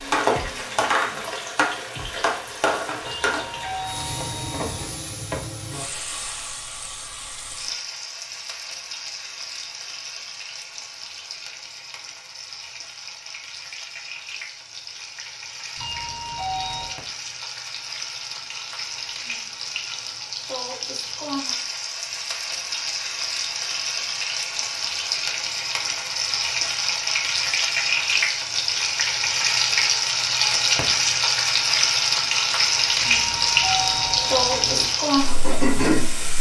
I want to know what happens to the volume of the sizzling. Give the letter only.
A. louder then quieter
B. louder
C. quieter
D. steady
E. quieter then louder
E.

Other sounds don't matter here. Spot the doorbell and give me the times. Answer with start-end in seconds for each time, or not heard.
3.0-4.9, 15.8-16.9, 33.0-34.9.